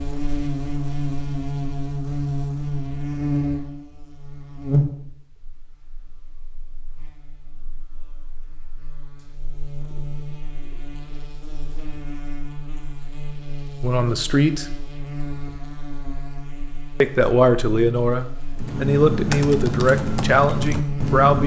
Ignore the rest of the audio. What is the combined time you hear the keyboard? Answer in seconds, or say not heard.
3 s.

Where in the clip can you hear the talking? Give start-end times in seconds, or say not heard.
13.8-14.7, 17.0-21.4.